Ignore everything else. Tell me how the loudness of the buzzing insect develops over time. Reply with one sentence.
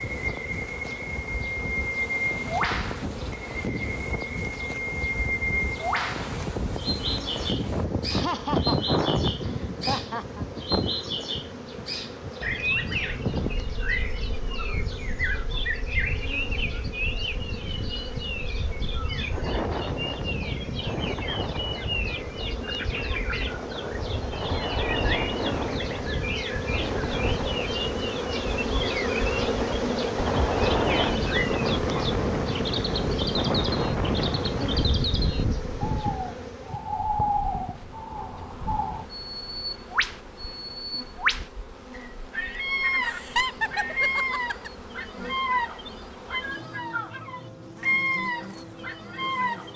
The loudness of the buzzing insect goes up, then down.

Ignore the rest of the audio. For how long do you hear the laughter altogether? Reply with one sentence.
The laughter can be heard for 4 seconds in total.